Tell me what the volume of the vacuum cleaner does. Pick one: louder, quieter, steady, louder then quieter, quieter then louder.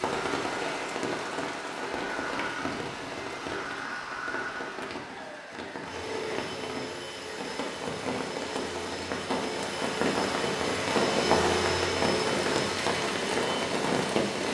louder.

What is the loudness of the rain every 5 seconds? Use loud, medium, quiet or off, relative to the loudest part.
medium, medium, loud.